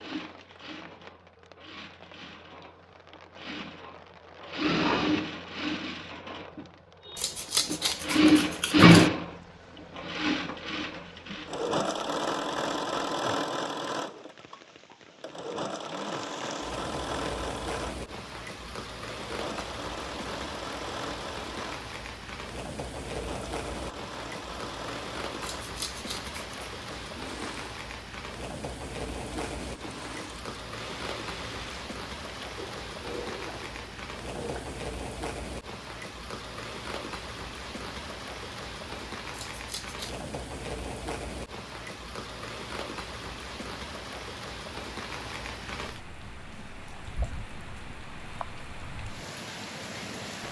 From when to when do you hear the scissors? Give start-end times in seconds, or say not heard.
7.2-9.1, 25.4-26.6, 39.3-40.3.